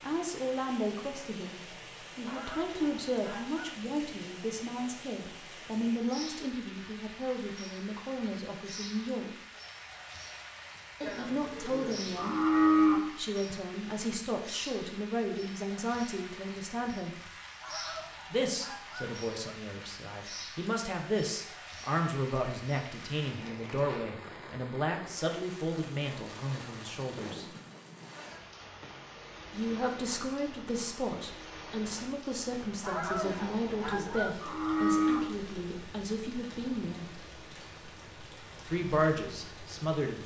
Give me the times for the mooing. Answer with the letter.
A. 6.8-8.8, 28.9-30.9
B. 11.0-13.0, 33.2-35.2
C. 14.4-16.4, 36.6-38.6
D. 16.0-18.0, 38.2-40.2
B.